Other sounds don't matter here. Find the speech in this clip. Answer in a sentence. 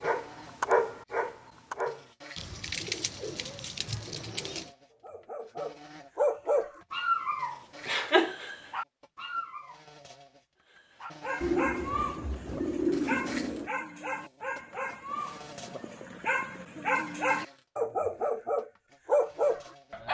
You can't hear the speech here.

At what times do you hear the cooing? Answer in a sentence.
The cooing can be heard from 2.4 to 4.7 s and from 11.4 to 13.7 s.